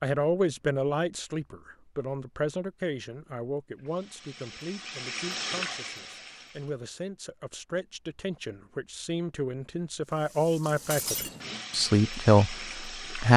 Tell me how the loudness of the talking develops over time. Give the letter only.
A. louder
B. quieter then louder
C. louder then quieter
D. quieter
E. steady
B.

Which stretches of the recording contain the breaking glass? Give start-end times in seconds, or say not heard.
10.9-11.3.